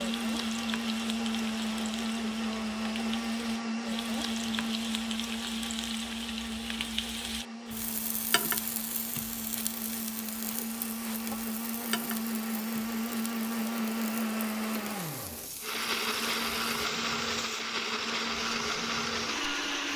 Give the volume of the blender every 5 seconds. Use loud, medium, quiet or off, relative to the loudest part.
loud, medium, loud, loud.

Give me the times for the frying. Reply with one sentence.
You can hear the frying from 0.0 to 19.9 s.